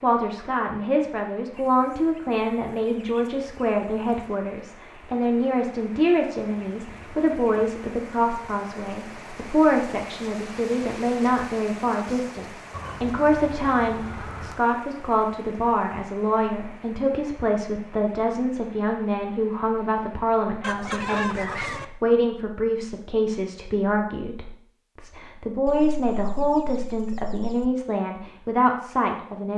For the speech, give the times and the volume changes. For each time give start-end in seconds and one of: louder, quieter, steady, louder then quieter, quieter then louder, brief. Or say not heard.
0.0-29.5 steady.